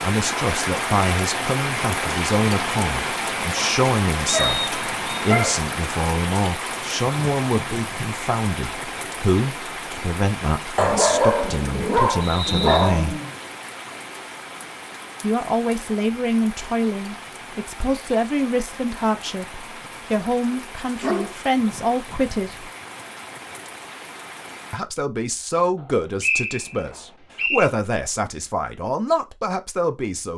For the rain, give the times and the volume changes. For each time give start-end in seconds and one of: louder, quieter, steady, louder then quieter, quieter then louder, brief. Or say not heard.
0.0-24.8 quieter.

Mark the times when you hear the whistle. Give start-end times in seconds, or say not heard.
4.2-5.0, 12.2-12.9, 26.2-27.7.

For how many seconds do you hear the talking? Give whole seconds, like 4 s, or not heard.
26 s.